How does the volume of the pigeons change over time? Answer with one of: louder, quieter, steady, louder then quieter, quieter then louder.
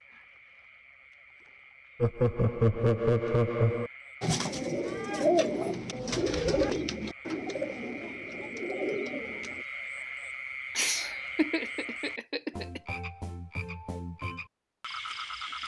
quieter.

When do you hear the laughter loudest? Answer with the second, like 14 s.
3 s.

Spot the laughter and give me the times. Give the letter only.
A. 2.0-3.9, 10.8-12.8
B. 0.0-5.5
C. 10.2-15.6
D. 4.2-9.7
A.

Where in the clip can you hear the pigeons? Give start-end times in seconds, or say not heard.
4.2-9.7.